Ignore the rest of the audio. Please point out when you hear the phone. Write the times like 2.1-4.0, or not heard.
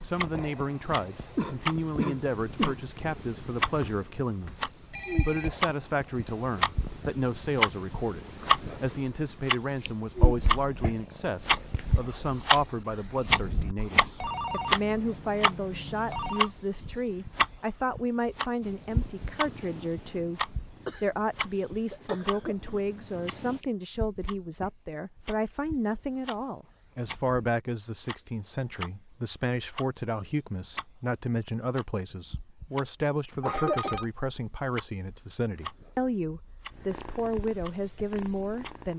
3.6-5.5, 14.2-16.5, 33.0-34.0.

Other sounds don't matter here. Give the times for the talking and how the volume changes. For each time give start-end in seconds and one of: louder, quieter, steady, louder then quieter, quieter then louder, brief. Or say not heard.
0.0-38.9 steady.